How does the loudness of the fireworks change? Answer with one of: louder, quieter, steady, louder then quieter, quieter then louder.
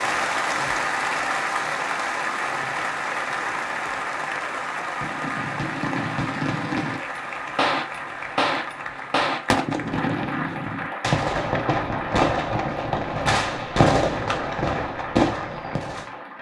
louder.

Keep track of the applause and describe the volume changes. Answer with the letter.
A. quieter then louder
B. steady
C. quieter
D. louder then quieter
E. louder
C.